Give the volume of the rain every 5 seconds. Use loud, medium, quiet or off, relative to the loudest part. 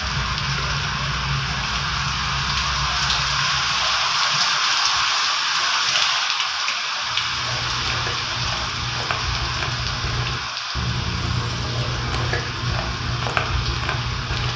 loud, loud, medium.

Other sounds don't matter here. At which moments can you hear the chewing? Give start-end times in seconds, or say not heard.
0.0-4.1, 7.0-14.5.